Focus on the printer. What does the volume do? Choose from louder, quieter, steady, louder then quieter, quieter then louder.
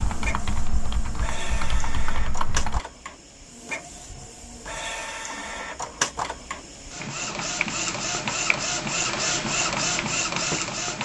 louder.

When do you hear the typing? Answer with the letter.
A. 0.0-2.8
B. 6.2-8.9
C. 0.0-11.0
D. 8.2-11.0
A.